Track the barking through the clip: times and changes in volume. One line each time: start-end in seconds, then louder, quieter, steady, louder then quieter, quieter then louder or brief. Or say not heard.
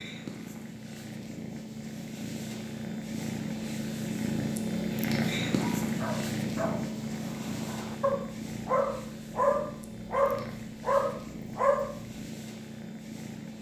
5.5-12.1 louder.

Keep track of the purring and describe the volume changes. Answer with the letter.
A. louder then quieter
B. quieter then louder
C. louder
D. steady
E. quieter
A.